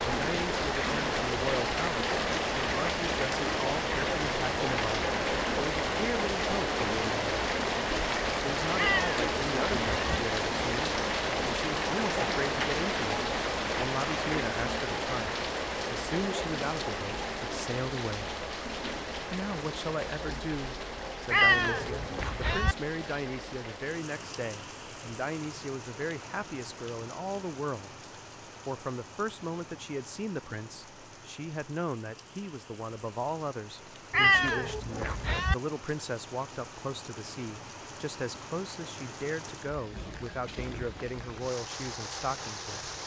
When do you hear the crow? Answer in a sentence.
The crow can't be heard in this clip.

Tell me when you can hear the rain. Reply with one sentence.
The rain can be heard from 0.0 to 43.0 s.